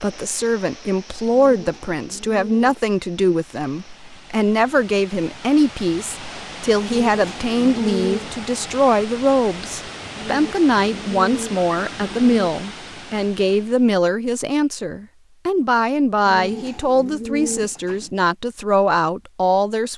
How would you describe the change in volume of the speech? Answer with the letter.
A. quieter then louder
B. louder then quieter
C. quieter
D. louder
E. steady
E.